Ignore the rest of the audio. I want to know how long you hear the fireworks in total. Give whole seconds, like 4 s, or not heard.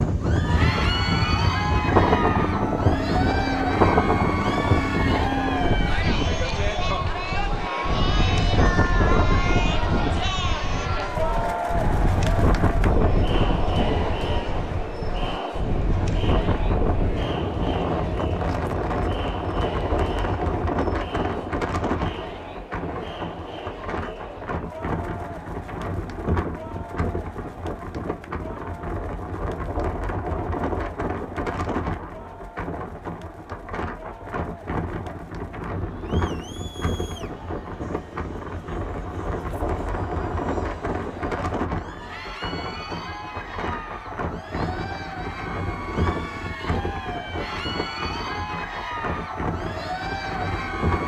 not heard.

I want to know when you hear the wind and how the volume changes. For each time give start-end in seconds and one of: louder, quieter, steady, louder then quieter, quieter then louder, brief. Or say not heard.
0.0-51.0 quieter.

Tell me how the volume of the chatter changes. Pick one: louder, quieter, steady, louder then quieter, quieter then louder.
quieter then louder.